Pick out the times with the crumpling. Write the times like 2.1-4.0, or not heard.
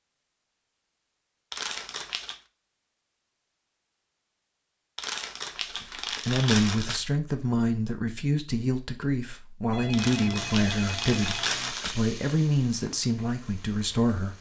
1.5-2.4, 5.0-7.0, 9.9-11.9.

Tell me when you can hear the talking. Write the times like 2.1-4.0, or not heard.
5.8-14.3.